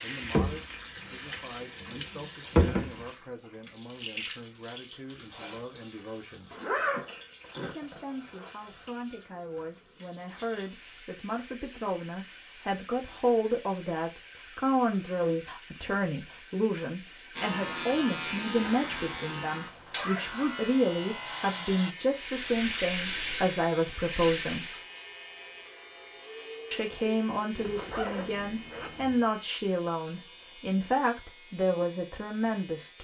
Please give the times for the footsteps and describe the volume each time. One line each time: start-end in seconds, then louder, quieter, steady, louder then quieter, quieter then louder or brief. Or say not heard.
not heard.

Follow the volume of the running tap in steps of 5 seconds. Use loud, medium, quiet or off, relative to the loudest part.
loud, quiet, quiet, quiet, loud, off, off.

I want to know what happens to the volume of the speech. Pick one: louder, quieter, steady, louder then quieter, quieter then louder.
louder.